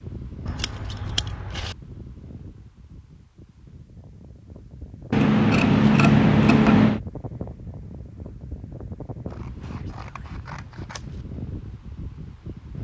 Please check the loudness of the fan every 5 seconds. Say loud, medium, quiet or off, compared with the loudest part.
medium, loud, loud.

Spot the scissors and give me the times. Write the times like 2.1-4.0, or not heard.
0.5-1.8, 5.1-7.0, 9.3-11.2.